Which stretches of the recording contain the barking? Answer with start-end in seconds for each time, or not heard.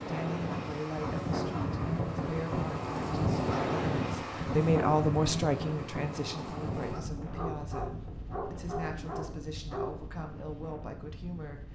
0.5-1.6, 7.3-9.9.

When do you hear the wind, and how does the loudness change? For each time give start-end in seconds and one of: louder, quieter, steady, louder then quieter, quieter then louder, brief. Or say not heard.
0.0-11.6 quieter.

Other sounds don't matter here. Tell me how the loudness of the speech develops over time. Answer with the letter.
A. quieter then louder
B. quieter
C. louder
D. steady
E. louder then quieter
E.